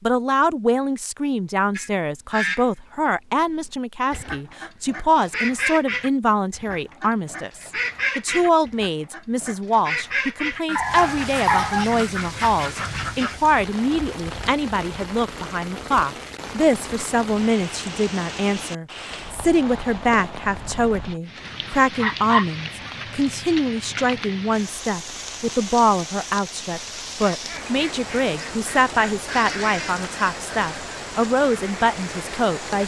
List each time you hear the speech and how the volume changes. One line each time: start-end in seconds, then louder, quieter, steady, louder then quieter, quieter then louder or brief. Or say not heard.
0.0-32.8 steady.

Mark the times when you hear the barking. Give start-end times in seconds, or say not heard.
10.8-11.8, 22.0-22.9.